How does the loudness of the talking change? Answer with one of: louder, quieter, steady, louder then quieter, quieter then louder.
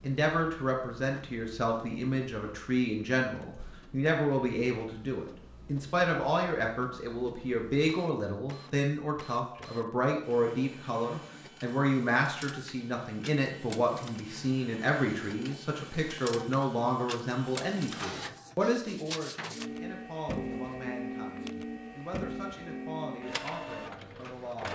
quieter.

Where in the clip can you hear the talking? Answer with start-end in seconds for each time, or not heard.
0.0-24.7.